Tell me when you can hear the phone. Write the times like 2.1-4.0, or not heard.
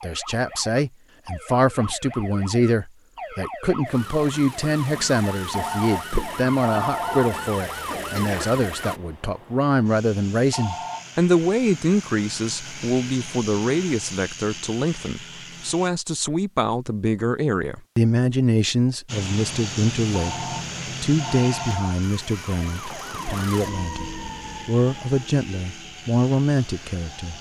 5.5-7.3, 10.5-11.1, 20.1-22.0.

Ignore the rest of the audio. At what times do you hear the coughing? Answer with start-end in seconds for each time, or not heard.
7.8-8.6.